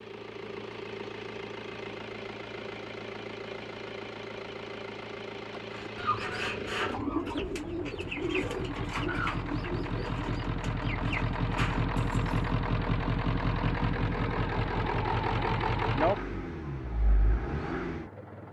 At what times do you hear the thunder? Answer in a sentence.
The thunder can't be heard in this clip.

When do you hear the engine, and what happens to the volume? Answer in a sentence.
You can hear the engine from 0.0 to 18.4 s, getting louder.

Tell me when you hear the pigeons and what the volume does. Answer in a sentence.
The pigeons can be heard from 5.7 to 12.5 s, getting quieter.